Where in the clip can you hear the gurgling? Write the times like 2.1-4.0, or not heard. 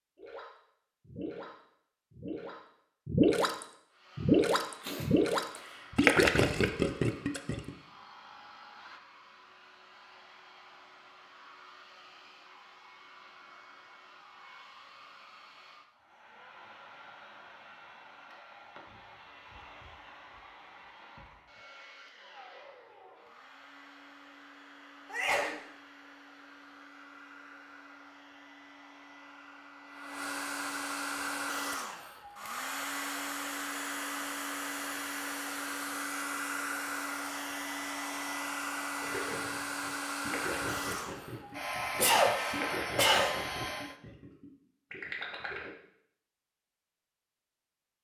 0.1-7.7, 39.0-45.7.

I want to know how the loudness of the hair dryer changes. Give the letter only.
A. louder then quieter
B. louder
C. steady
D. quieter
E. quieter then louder
B.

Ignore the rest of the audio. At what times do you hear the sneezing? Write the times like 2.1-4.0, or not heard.
4.8-6.0, 25.1-25.6, 42.0-43.4.